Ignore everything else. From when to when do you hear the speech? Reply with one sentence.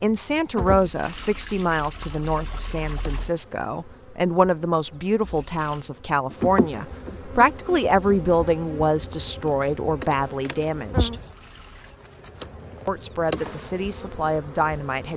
You can hear the speech from 0.0 to 11.2 s and from 12.8 to 15.1 s.